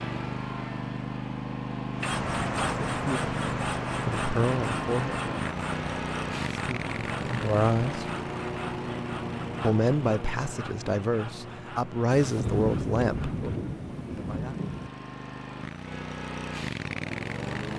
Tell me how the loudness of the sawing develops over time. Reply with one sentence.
The loudness of the sawing goes down.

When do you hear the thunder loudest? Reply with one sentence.
The volume of the thunder peaks at 13 seconds.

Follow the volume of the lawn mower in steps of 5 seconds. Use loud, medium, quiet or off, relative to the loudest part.
loud, loud, medium, loud.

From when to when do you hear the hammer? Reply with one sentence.
You can't hear the hammer here.